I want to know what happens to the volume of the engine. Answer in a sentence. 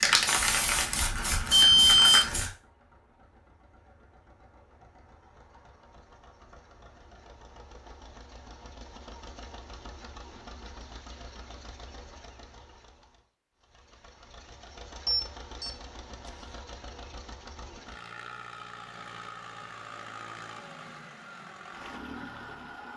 The loudness of the engine goes up.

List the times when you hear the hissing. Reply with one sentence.
The hissing can be heard from 0.0 to 2.5 s.